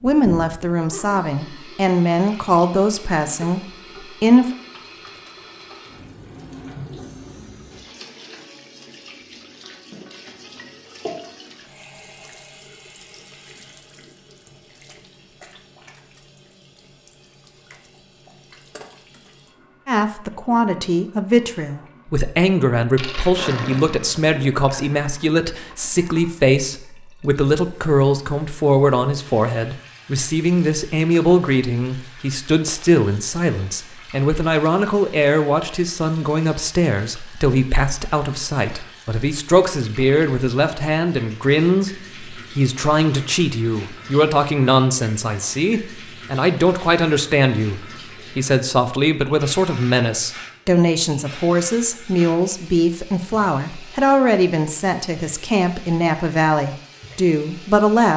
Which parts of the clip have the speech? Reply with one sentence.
The speech can be heard from 0.0 to 4.5 s and from 19.9 to 58.1 s.